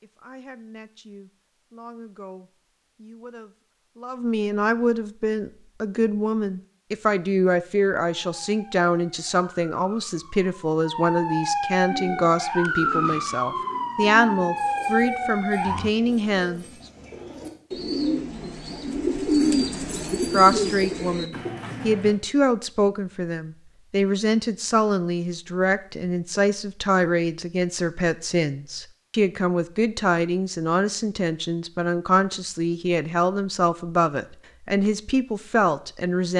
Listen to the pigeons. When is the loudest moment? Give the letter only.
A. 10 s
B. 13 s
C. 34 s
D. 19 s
D.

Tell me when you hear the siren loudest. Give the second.
13 s.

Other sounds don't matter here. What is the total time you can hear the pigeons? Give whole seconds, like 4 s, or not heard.
10 s.